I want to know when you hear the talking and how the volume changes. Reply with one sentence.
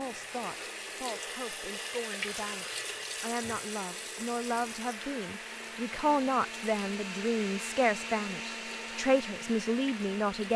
The talking can be heard from 0.0 to 10.5 s, getting louder.